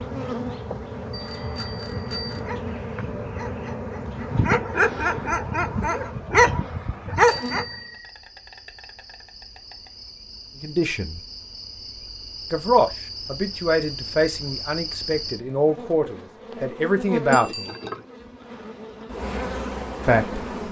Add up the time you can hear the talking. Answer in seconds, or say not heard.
6 s.